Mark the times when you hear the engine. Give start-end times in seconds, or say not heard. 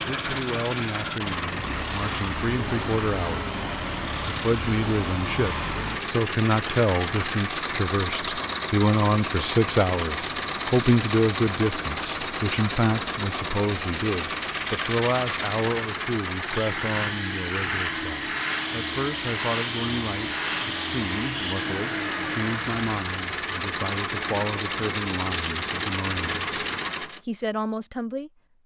0.0-27.2.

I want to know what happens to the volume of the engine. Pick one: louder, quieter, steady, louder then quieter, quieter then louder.
steady.